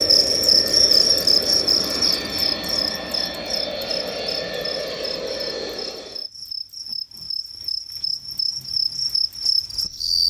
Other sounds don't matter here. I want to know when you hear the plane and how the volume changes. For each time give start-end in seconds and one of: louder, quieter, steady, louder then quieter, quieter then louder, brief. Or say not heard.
0.0-6.2 steady.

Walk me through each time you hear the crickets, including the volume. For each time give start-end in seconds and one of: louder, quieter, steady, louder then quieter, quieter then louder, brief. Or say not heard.
0.0-10.2 quieter then louder.